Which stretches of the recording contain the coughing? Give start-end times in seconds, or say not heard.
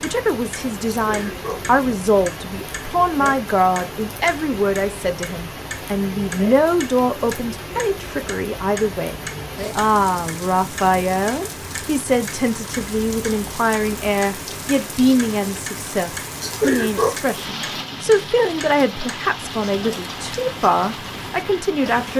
1.0-1.6, 16.4-17.1.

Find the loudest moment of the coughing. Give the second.
17 s.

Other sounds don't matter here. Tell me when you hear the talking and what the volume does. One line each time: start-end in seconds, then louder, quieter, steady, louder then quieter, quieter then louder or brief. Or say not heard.
0.0-22.1 steady.